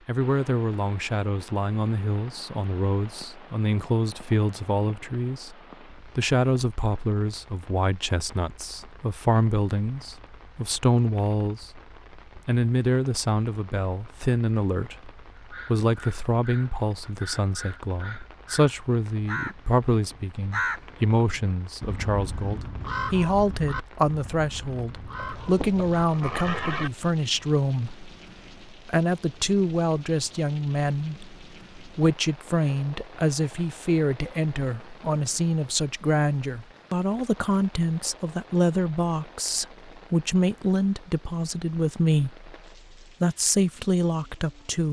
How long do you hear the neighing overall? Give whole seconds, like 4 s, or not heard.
2 s.